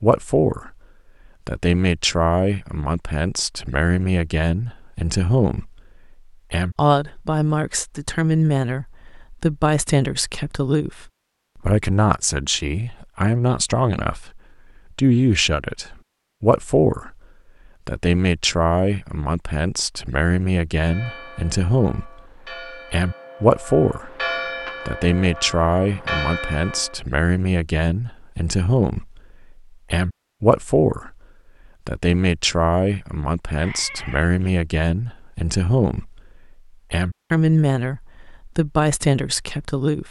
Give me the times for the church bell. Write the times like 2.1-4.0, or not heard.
20.8-27.0.